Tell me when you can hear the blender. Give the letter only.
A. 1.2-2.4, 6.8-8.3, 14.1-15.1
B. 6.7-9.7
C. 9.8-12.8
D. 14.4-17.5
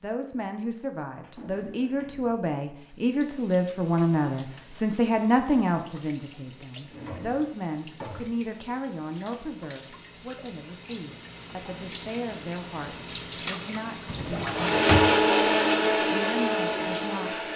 D.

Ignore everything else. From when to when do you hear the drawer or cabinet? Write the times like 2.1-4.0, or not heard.
1.2-2.4, 6.8-8.3, 14.1-15.1.